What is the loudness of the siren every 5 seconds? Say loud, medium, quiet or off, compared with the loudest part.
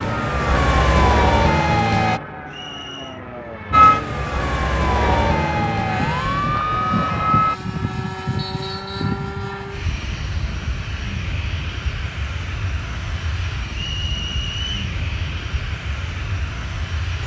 loud, loud, off, off.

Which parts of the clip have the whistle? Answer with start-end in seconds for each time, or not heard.
2.5-3.2, 8.3-9.2, 13.8-14.8.